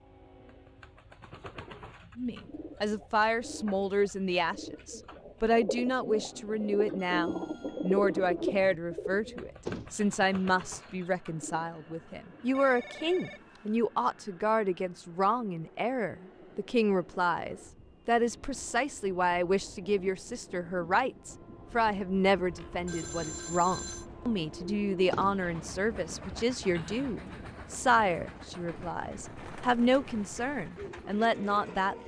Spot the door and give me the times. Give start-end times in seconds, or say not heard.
9.7-10.4, 25.1-25.6.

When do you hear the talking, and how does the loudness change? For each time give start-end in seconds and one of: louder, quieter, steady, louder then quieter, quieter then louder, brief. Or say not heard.
2.1-32.0 steady.